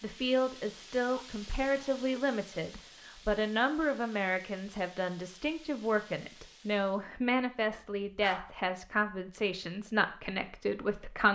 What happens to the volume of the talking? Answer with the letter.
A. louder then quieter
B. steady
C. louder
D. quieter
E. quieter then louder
B.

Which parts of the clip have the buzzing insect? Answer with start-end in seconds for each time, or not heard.
not heard.